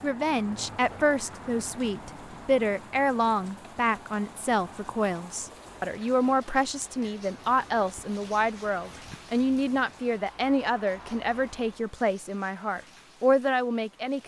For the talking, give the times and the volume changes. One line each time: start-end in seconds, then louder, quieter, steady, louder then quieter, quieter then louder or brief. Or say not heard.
0.0-14.2 steady.